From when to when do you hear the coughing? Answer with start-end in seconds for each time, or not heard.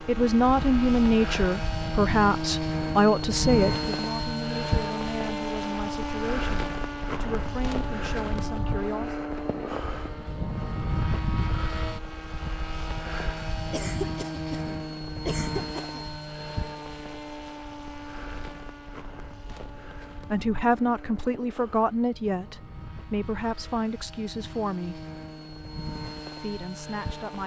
13.7-16.1.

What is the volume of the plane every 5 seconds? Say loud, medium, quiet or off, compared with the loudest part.
loud, loud, loud, medium, quiet, medium.